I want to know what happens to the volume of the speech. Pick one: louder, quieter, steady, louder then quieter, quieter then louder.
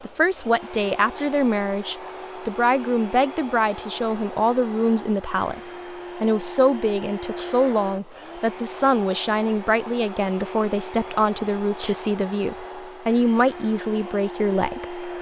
steady.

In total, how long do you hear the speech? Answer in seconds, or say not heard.
15 s.